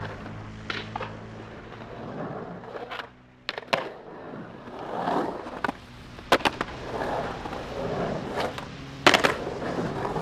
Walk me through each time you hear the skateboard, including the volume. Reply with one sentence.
The skateboard can be heard from 0.0 to 10.1 s, getting louder.